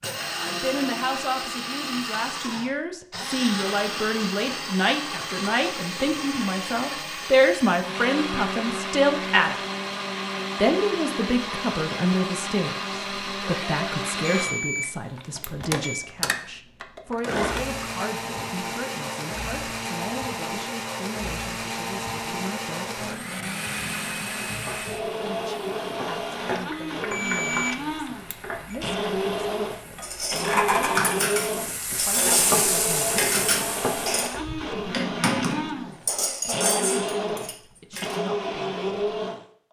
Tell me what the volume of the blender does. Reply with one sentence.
The volume of the blender stays about the same.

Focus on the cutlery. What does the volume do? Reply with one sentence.
The volume of the cutlery stays about the same.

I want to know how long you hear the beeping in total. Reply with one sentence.
The beeping can be heard for 3 seconds in total.